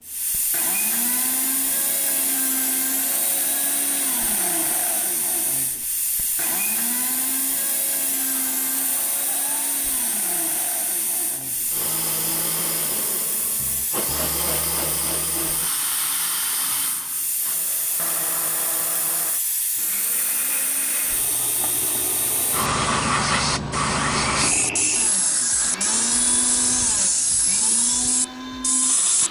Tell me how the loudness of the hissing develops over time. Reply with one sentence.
The loudness of the hissing goes up.